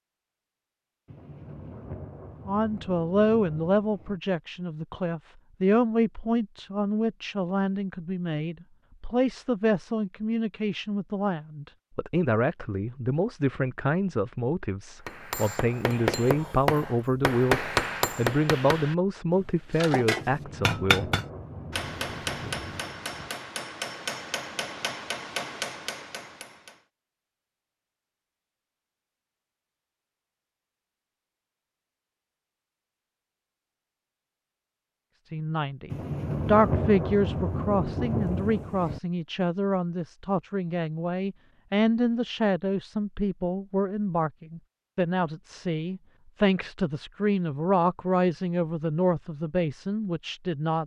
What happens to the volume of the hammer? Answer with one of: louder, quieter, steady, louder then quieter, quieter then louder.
quieter.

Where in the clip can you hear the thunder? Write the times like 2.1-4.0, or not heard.
1.1-4.2, 20.1-23.3, 35.9-39.0.